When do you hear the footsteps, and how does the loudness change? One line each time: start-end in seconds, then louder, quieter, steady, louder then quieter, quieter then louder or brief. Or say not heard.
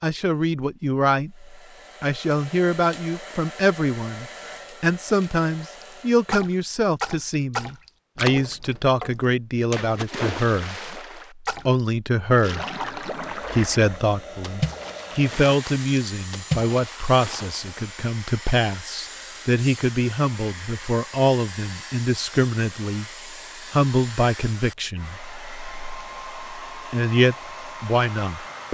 not heard.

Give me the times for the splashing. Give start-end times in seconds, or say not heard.
5.8-17.8.